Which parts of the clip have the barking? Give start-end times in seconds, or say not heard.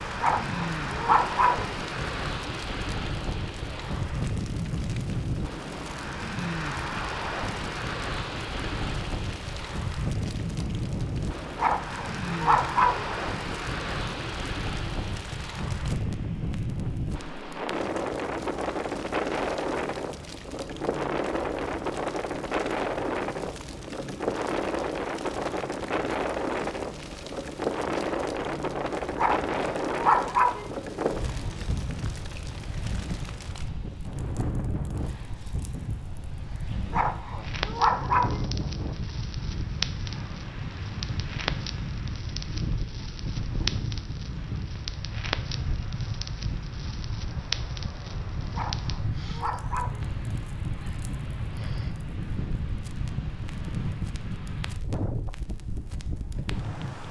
0.2-1.7, 11.6-13.1, 29.1-30.6, 36.9-38.4, 48.5-50.0.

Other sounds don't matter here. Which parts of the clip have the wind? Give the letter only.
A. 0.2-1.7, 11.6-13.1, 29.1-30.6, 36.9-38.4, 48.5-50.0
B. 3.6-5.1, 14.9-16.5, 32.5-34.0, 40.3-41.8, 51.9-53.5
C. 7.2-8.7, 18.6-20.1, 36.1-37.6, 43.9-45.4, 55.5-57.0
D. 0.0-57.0
D.